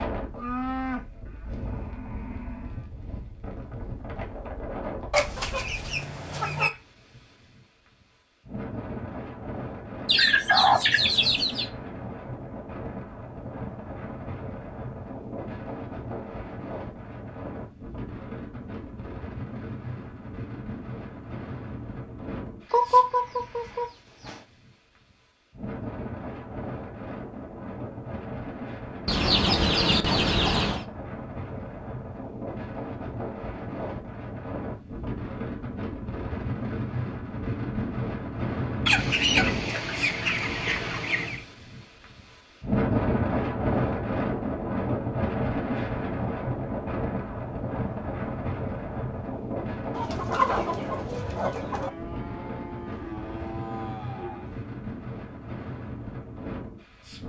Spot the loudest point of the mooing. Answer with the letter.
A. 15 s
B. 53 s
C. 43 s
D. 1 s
D.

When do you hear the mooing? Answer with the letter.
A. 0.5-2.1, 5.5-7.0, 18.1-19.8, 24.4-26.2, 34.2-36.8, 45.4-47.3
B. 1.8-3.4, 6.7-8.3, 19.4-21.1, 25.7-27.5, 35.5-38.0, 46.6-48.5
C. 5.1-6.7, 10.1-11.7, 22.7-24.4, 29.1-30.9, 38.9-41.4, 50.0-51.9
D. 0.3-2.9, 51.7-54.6
D.